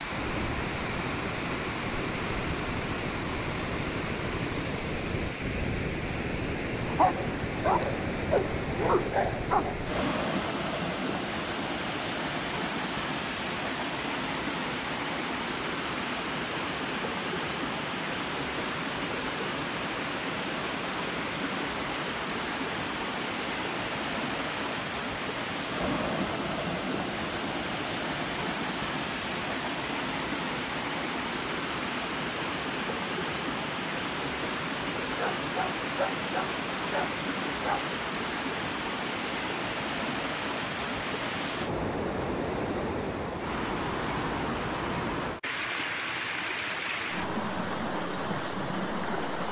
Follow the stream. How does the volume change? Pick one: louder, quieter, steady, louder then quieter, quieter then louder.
steady.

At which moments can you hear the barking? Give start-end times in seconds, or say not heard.
6.8-9.8, 35.1-37.9.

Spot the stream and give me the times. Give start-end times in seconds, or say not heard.
0.0-49.4.